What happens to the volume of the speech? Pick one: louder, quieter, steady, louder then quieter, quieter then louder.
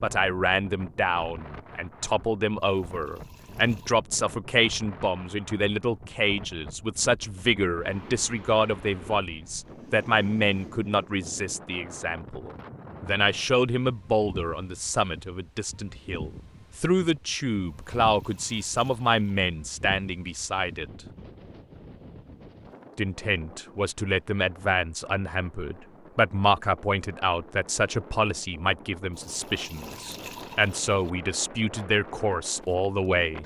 steady.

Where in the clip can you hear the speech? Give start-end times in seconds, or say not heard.
0.0-20.9, 22.9-33.4.